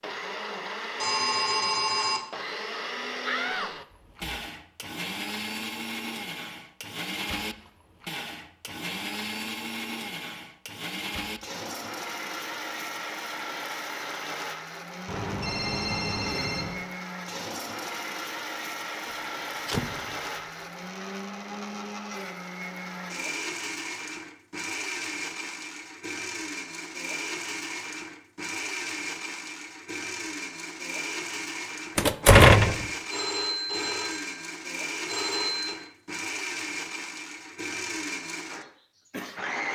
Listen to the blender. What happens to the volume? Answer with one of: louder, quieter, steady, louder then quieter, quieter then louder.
steady.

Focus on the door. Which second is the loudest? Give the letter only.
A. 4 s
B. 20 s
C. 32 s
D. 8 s
C.